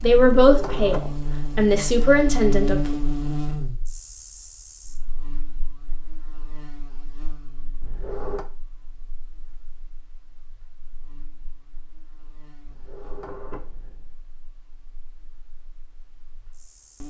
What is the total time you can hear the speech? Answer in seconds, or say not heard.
3 s.